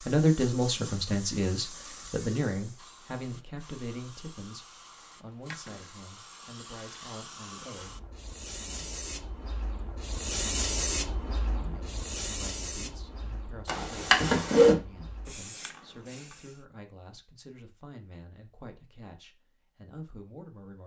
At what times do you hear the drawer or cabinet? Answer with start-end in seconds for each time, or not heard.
13.7-14.8.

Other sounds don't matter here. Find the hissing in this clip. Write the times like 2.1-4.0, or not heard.
0.0-16.6.